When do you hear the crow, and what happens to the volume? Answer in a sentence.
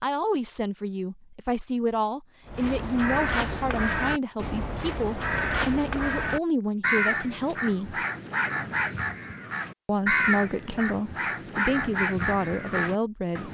You can hear the crow from 2.5 to 13.5 s, at a steady volume.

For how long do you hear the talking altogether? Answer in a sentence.
You can hear the talking for 12 seconds altogether.